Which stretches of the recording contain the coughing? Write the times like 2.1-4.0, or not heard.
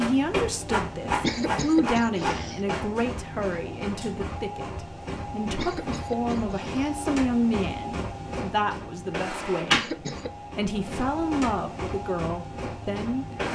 1.1-2.6, 5.5-7.0, 9.6-10.3.